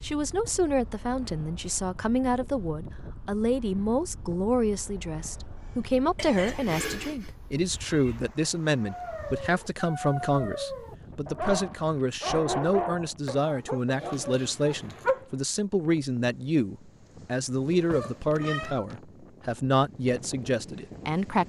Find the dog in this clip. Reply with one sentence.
The dog can be heard from 8.8 to 15.2 s.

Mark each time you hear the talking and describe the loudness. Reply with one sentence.
You can hear the talking from 0.0 to 21.4 s, at a steady volume.